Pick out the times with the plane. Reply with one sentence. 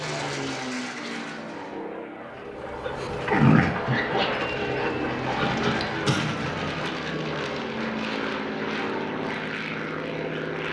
The plane can be heard from 0.0 to 10.6 s.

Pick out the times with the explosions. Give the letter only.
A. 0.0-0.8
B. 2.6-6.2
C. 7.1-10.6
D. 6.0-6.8
D.